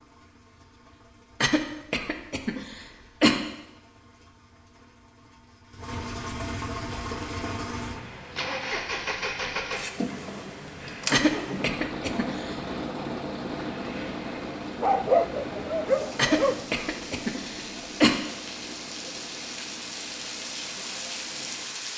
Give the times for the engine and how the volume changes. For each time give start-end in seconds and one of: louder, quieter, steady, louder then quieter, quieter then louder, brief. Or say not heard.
0.0-21.8 louder then quieter.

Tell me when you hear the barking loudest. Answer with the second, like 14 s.
15 s.